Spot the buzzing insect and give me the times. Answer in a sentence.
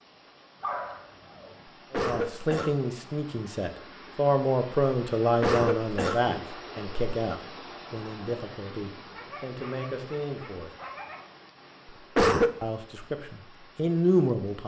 You can't hear the buzzing insect here.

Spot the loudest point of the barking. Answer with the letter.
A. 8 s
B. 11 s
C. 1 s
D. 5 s
C.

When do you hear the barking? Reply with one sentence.
You can hear the barking from 0.6 to 1.6 s and from 8.9 to 11.3 s.